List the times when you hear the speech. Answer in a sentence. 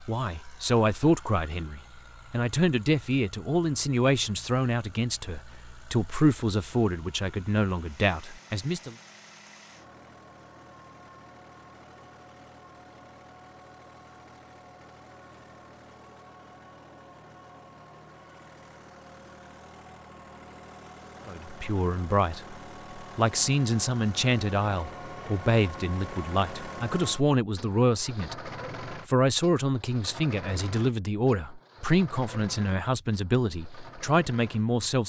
The speech can be heard from 0.0 to 8.9 s and from 21.2 to 35.0 s.